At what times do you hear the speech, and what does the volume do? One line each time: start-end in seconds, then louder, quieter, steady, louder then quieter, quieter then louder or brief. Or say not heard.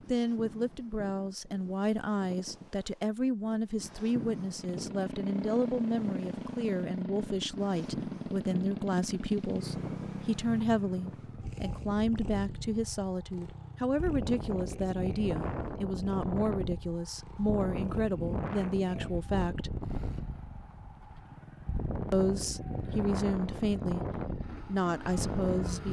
0.1-19.8 steady
22.1-24.1 brief
24.6-25.8 brief.